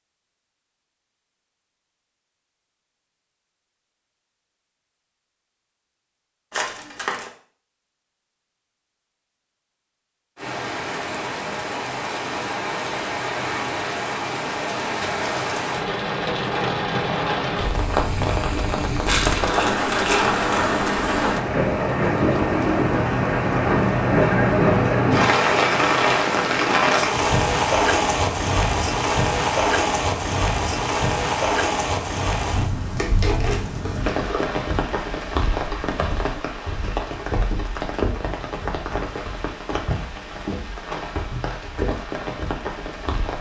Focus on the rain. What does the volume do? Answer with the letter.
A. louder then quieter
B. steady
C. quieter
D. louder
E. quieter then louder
A.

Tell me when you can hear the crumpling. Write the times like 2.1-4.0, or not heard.
6.5-7.3, 19.1-20.6, 33.0-34.5.